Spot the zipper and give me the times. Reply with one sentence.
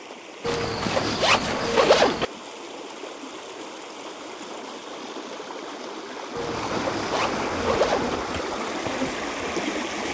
You can hear the zipper from 0.4 to 2.2 s and from 6.3 to 8.2 s.